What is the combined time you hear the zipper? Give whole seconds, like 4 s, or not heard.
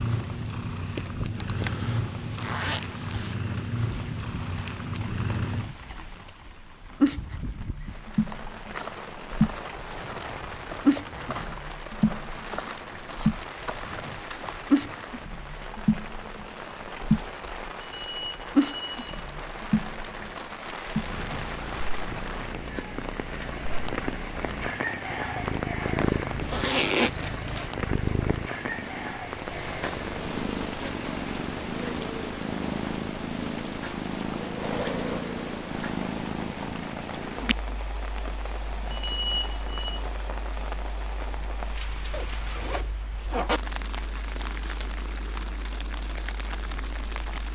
5 s.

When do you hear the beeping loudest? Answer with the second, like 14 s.
39 s.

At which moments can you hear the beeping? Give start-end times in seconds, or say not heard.
17.8-19.2, 38.9-40.0.